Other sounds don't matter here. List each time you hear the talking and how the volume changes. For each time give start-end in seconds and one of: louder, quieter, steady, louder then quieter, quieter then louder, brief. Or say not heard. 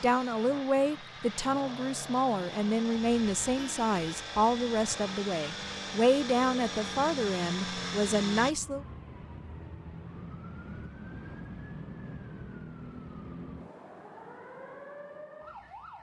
0.0-8.8 steady.